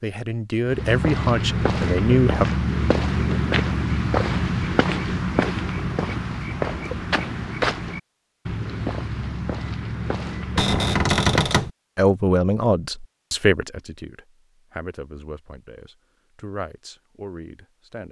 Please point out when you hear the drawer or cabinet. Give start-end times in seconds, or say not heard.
10.6-11.7.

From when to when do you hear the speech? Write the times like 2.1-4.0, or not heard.
0.0-2.5, 11.9-18.0.